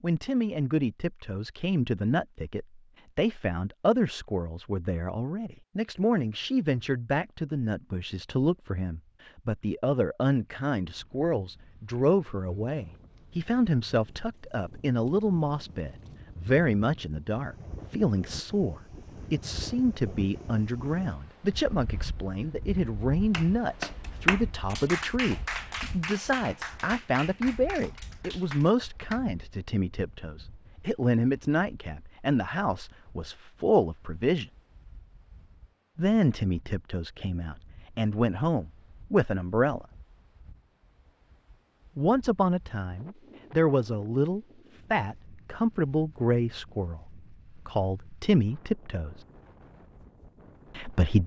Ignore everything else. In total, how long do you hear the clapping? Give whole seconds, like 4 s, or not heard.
6 s.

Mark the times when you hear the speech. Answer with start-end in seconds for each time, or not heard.
0.0-34.5, 36.0-39.9, 42.0-49.2, 50.8-51.2.